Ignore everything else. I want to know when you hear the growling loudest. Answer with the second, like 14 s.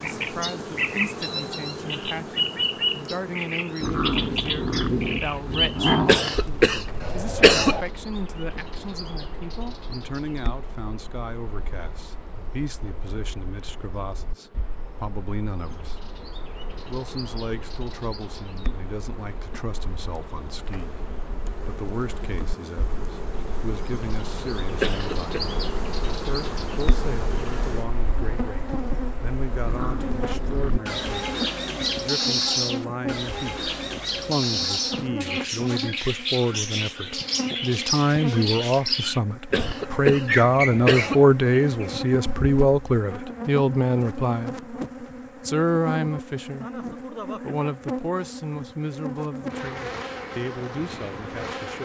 6 s.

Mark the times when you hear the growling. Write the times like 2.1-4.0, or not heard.
3.8-6.2, 29.6-30.9.